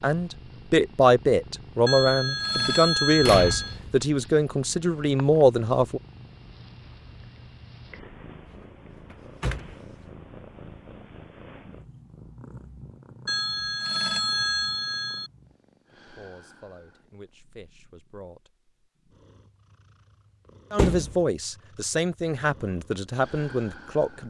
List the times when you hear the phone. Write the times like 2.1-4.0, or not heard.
1.9-3.8, 13.2-15.3.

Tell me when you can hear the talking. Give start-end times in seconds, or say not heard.
0.0-6.0, 15.9-18.6, 20.7-24.2.